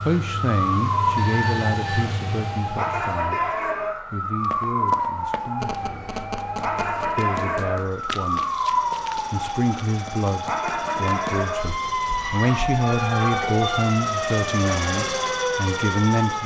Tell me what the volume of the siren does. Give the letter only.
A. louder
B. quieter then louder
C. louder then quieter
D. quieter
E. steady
E.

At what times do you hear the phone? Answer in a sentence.
You can hear the phone from 1.1 to 2.0 s, from 5.6 to 7.2 s and from 11.7 to 13.9 s.